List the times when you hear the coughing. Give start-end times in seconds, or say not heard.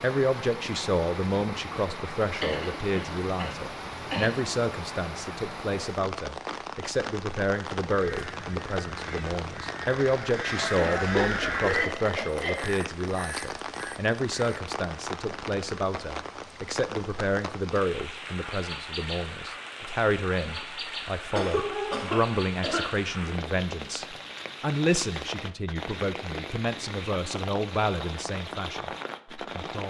2.4-4.3, 10.8-12.7, 21.3-22.9.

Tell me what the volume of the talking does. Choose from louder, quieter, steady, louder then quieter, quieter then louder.
steady.